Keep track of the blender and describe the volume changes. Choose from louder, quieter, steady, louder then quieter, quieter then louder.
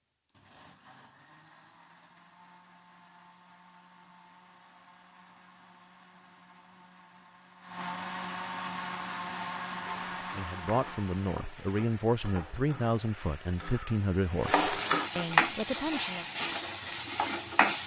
louder.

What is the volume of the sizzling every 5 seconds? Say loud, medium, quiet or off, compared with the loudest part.
off, off, medium, loud.